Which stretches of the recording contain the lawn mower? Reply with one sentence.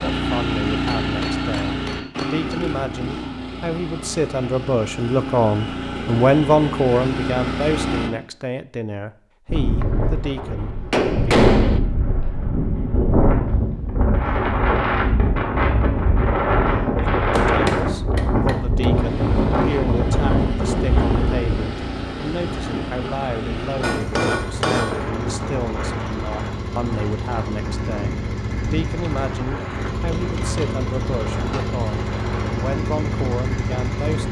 The lawn mower can be heard from 0.0 to 8.1 s and from 18.9 to 34.2 s.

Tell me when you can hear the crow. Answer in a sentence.
You can't hear the crow here.